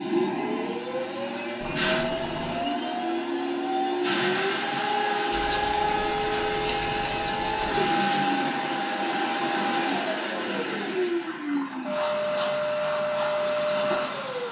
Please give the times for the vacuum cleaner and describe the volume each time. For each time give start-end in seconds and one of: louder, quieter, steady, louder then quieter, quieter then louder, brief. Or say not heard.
0.0-14.4 steady.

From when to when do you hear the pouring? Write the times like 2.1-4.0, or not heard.
1.6-2.7, 5.3-7.8, 11.2-12.0.